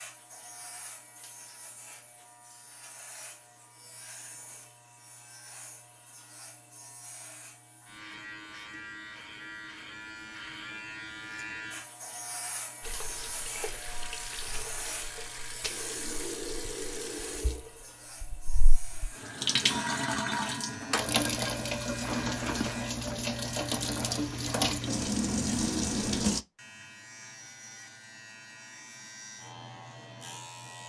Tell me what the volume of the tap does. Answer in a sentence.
The loudness of the tap goes up.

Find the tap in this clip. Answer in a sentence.
You can hear the tap from 12.8 to 26.4 s.